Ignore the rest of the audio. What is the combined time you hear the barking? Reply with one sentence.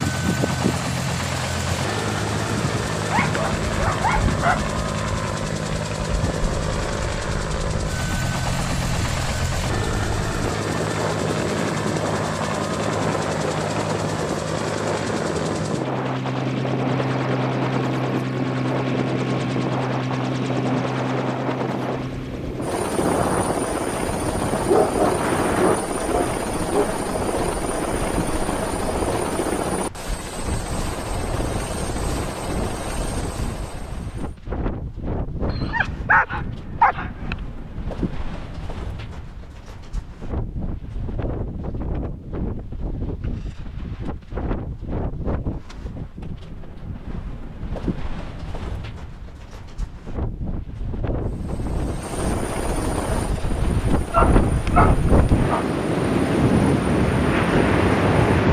The barking can be heard for 7 seconds in total.